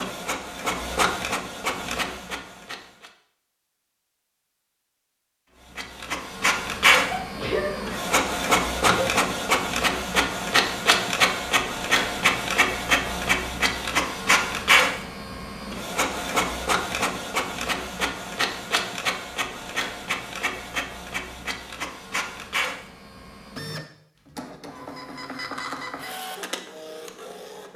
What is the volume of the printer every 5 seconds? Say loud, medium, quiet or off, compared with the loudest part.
medium, loud, loud, medium, medium, quiet.